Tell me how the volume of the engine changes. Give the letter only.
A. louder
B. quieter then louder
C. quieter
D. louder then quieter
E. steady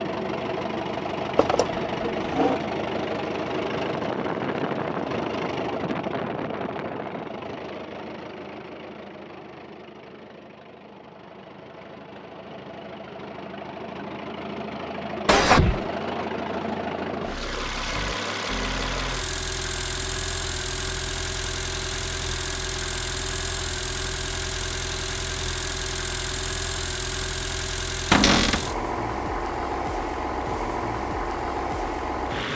B.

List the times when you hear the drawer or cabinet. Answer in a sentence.
The drawer or cabinet can be heard from 1.4 to 2.6 s, from 15.2 to 15.8 s and from 28.1 to 28.6 s.